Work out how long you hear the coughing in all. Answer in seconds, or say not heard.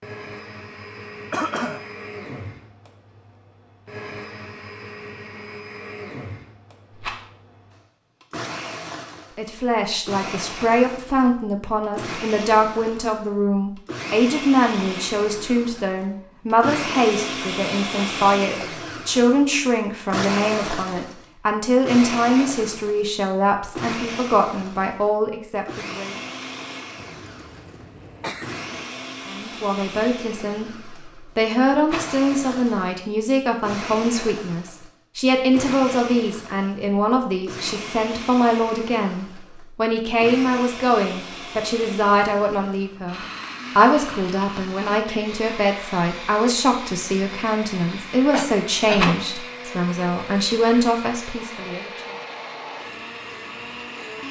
3 s.